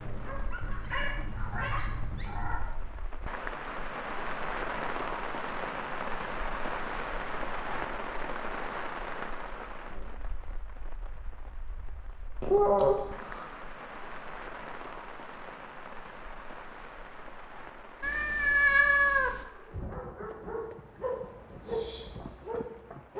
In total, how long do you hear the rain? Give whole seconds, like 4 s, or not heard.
23 s.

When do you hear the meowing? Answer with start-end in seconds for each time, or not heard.
0.6-2.6, 12.4-13.4, 18.0-19.4.